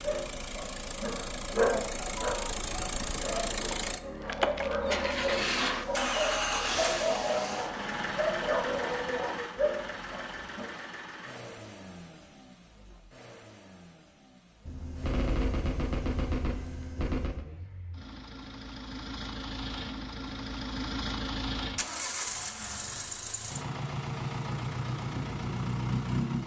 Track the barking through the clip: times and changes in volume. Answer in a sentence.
You can hear the barking from 0.0 to 10.7 s, getting quieter then louder.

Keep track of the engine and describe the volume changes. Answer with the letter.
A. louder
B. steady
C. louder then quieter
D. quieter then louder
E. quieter
D.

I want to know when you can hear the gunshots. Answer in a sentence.
You can hear the gunshots from 14.7 to 17.4 s.